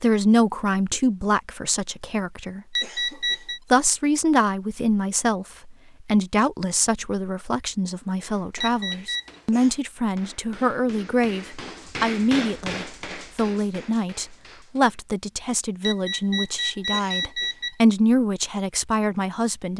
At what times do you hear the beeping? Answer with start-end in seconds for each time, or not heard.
2.8-3.6, 8.6-9.3, 15.8-17.8.